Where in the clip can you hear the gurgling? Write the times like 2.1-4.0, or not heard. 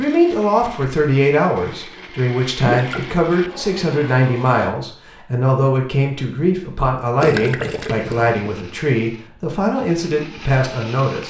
2.6-3.0, 7.2-8.5.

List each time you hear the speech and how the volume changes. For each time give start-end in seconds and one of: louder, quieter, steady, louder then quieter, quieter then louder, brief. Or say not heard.
0.0-11.2 steady.